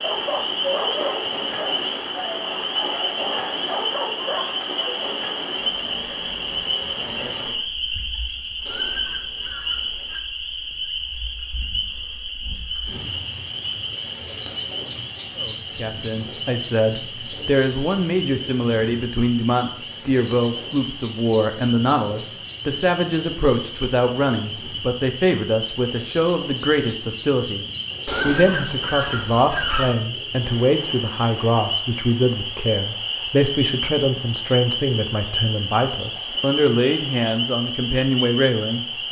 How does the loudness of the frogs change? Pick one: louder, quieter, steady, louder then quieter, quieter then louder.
quieter then louder.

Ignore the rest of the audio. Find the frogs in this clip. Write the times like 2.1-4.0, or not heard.
0.0-39.0.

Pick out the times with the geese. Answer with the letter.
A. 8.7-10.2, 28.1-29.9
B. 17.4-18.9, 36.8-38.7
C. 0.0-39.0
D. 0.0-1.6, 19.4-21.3
A.